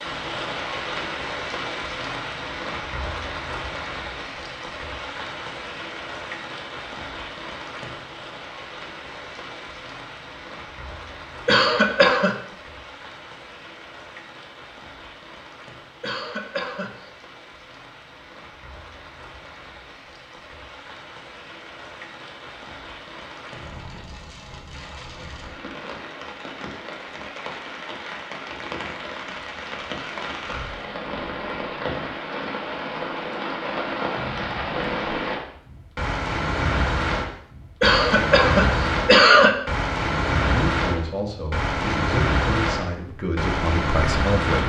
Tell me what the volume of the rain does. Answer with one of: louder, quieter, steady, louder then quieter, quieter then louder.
quieter then louder.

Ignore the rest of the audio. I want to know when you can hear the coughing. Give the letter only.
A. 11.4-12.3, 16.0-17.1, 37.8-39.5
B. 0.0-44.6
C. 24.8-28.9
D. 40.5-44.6
A.